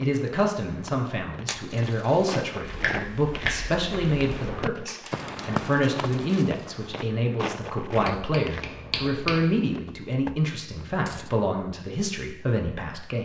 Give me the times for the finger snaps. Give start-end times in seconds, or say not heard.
2.6-4.5, 8.0-9.6.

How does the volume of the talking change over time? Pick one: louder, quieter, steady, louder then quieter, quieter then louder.
steady.